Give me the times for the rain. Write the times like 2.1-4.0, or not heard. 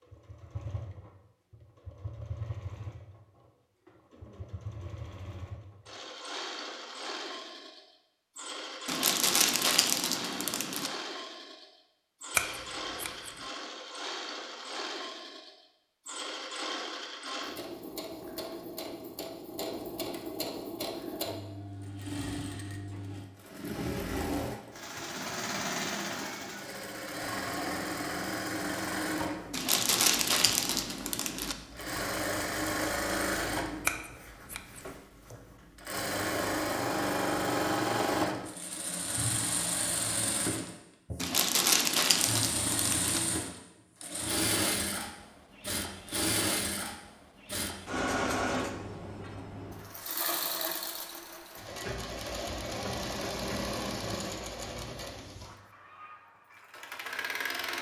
not heard.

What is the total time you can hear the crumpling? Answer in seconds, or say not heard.
6 s.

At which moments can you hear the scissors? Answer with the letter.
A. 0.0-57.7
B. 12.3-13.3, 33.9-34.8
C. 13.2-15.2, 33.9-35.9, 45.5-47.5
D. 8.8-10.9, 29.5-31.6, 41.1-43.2
B.